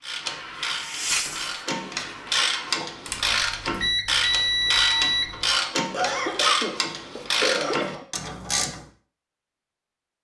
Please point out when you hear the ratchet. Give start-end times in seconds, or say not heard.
0.0-8.8.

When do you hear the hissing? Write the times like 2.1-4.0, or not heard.
0.2-2.8.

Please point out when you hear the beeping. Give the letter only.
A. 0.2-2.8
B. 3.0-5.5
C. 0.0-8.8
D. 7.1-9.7
B.